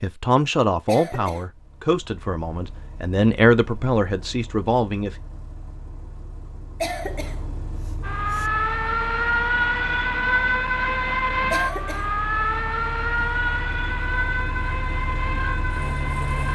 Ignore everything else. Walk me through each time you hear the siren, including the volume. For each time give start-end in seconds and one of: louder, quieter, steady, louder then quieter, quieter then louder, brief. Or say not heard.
8.0-16.4 quieter.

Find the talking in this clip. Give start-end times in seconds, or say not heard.
0.0-5.2.